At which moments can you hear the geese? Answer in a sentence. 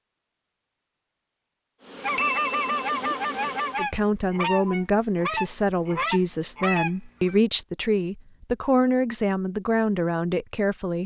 The geese can be heard from 2.0 to 7.3 s.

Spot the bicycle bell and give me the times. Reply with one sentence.
You can hear the bicycle bell from 2.1 to 2.9 s.